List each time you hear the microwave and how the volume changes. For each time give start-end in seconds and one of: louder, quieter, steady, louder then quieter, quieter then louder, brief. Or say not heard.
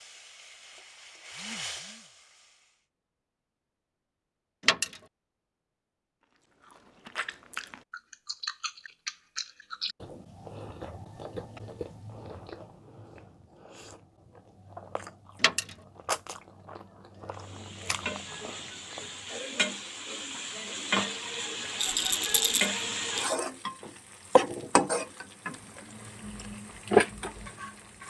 not heard.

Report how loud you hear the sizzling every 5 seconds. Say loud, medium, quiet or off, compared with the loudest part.
quiet, off, off, medium, loud, loud.